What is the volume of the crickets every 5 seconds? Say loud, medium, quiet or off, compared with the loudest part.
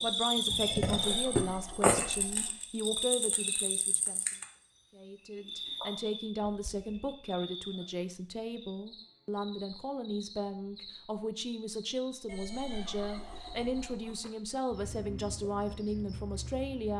loud, quiet, quiet, quiet.